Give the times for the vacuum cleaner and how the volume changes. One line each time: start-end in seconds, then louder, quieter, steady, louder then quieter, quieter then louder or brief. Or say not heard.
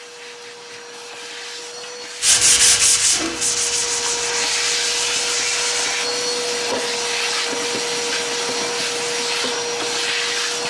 0.0-10.6 louder.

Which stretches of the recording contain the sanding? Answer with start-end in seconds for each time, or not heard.
2.2-6.0.